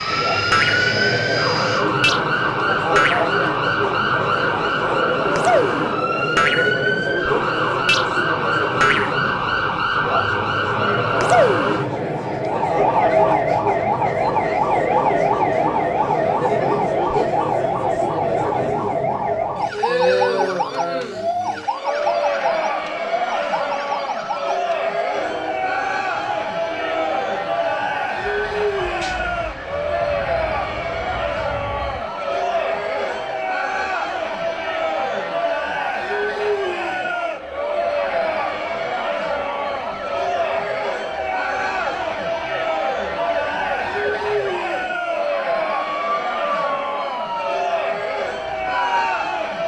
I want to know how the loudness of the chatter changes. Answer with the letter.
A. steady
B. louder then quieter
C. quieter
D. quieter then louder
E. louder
A.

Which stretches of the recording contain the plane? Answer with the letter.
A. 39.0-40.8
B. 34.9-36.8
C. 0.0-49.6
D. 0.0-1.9
D.